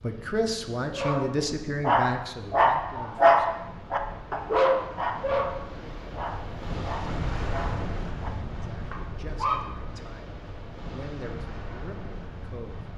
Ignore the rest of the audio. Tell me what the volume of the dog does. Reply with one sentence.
The volume of the dog goes down.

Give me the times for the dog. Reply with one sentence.
The dog can be heard from 0.9 to 9.7 s.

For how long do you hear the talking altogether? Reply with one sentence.
The talking can be heard for 8 seconds in total.